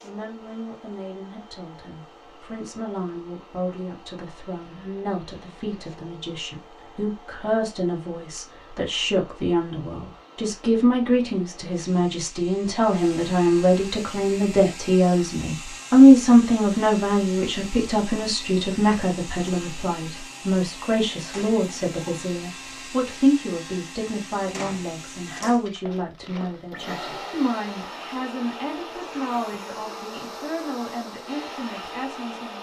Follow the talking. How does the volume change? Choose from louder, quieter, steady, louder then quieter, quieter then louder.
louder then quieter.